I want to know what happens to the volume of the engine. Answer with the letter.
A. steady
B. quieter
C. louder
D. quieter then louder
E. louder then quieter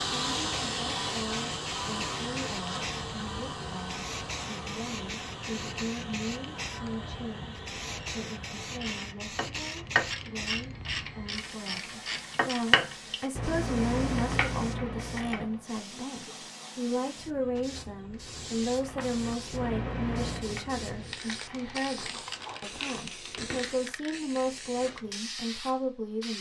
B.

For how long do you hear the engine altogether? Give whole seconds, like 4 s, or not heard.
9 s.